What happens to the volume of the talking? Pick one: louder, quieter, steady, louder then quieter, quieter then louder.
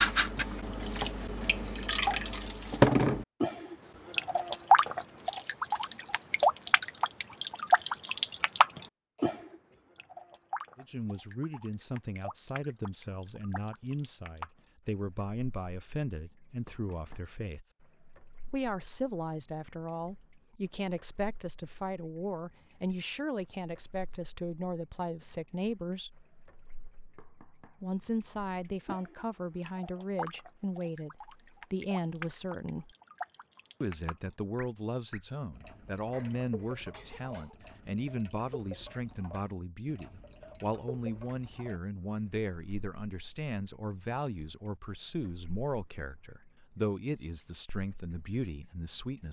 steady.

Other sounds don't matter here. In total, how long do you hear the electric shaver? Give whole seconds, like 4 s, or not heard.
not heard.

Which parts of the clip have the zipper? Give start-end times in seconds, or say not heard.
not heard.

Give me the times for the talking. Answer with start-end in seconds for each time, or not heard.
10.8-17.6, 18.4-26.2, 27.8-32.9, 33.8-49.2.